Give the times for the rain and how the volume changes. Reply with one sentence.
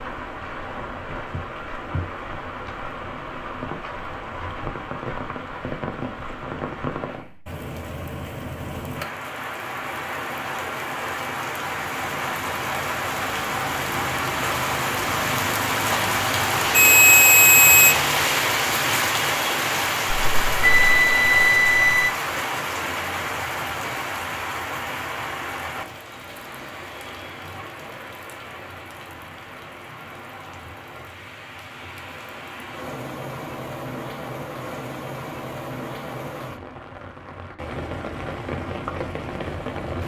You can hear the rain from 0.0 to 40.0 s, getting louder then quieter.